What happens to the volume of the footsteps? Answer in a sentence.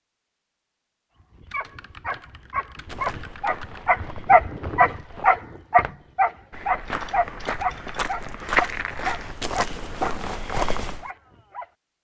The loudness of the footsteps goes up.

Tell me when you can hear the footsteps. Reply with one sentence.
The footsteps can be heard from 2.8 to 11.1 s.